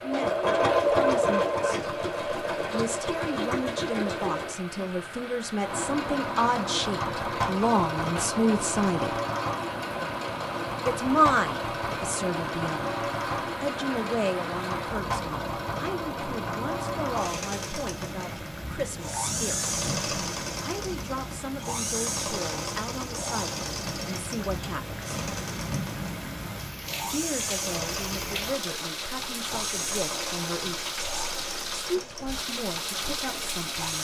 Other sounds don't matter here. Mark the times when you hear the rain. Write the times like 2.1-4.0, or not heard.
0.0-34.0.